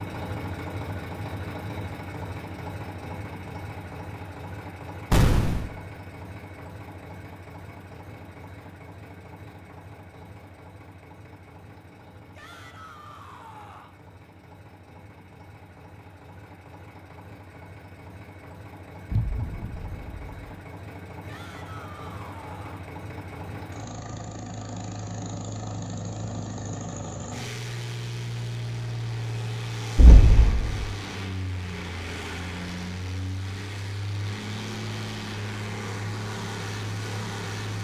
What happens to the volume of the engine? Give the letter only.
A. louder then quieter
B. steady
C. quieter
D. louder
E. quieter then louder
E.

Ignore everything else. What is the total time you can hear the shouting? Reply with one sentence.
You can hear the shouting for 3 seconds altogether.